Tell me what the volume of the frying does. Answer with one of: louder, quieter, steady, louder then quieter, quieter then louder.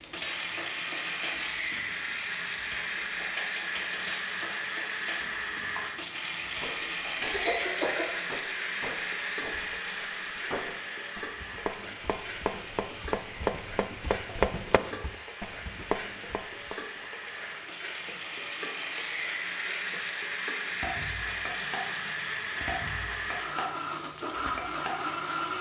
steady.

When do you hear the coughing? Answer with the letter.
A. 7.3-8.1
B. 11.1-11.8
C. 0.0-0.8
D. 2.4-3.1
A.